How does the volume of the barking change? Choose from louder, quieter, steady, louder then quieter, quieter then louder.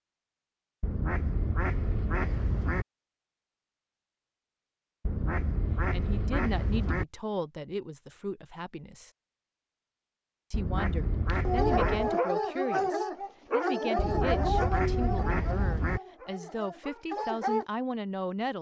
quieter.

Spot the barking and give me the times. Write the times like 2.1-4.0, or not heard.
11.2-17.6.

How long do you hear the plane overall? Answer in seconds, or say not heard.
not heard.